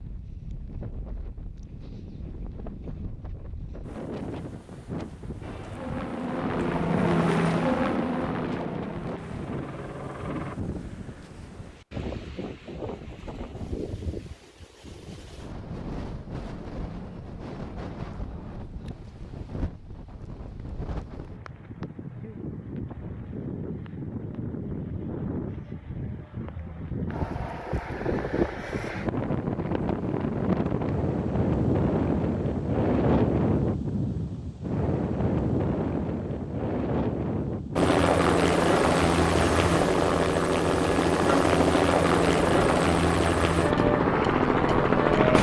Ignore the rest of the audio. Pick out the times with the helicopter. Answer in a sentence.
The helicopter can be heard from 5.4 to 10.6 s and from 37.8 to 45.3 s.